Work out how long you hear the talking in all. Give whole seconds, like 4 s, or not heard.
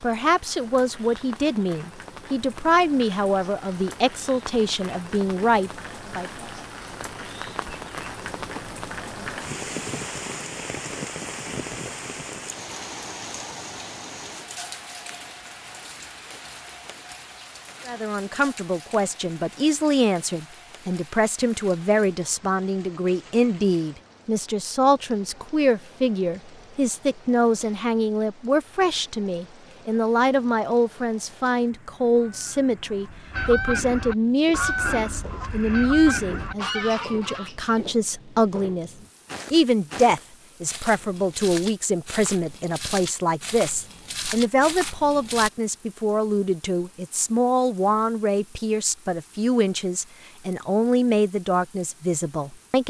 41 s.